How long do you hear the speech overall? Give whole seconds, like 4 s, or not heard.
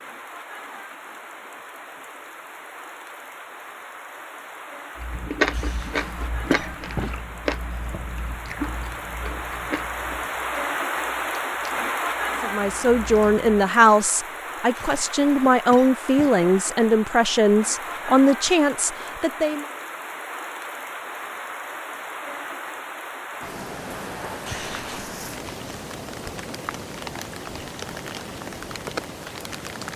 7 s.